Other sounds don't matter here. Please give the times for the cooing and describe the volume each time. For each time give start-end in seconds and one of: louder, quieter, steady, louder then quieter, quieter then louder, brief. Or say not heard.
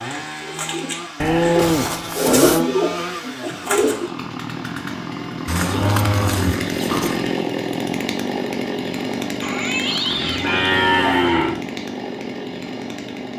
0.0-4.0 louder then quieter.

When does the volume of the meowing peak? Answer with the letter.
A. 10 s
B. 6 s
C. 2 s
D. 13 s
A.